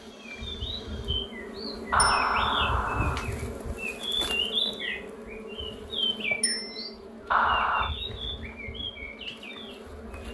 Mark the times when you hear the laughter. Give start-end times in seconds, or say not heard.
1.9-3.2, 7.3-7.9.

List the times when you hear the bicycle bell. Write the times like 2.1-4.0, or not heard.
1.9-2.4, 6.4-6.9.